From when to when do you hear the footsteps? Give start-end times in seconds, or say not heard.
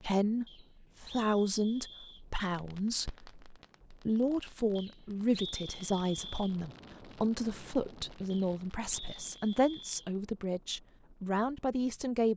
not heard.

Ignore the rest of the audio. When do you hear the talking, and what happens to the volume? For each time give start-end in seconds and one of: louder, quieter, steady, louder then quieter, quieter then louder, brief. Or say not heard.
0.0-12.3 steady.